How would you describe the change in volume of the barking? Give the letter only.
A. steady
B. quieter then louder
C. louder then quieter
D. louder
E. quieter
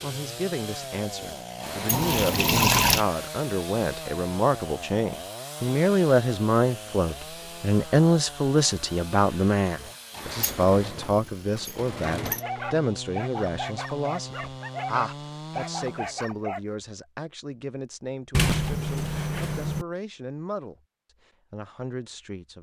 A.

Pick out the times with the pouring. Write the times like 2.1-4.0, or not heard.
1.9-3.0.